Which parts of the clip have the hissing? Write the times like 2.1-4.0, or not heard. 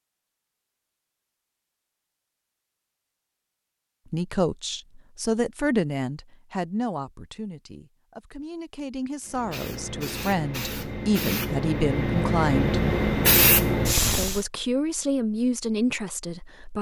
9.2-14.4.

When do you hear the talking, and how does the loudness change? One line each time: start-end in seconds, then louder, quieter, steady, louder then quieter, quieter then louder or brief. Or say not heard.
4.1-12.8 quieter then louder
14.2-16.7 brief.